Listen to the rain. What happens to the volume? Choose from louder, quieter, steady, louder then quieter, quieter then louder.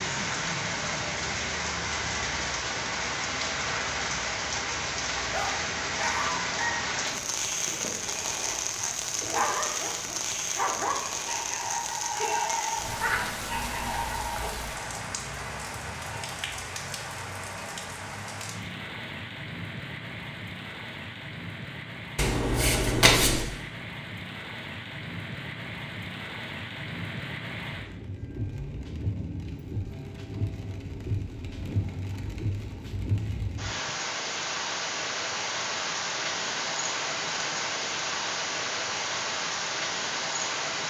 quieter then louder.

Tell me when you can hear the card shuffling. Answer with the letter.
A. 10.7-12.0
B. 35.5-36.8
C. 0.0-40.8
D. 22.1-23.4
D.